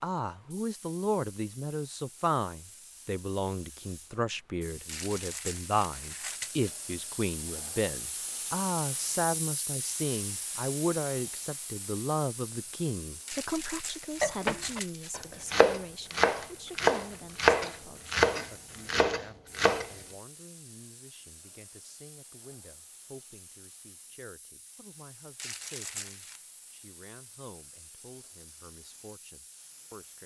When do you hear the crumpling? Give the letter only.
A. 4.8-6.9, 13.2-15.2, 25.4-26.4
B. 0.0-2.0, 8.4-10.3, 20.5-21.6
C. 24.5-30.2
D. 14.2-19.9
A.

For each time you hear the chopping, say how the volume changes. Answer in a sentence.
The chopping can be heard from 14.2 to 19.9 s, getting louder then quieter.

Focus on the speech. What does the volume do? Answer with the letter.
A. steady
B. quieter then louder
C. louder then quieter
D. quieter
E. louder
D.